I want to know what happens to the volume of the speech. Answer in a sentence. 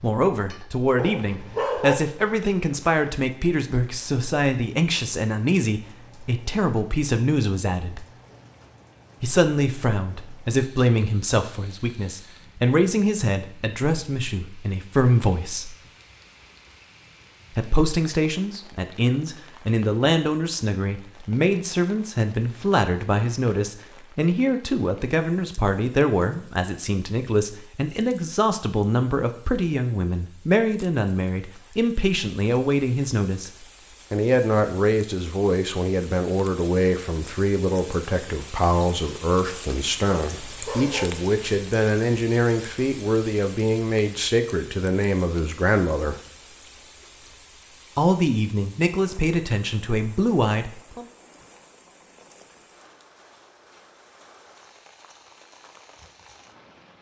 The volume of the speech stays about the same.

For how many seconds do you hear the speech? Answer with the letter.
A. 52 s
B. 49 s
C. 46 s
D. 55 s
C.